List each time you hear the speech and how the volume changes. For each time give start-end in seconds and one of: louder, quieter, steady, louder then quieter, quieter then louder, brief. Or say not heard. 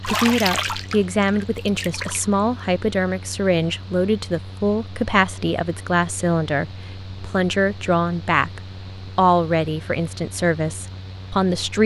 0.1-11.8 steady.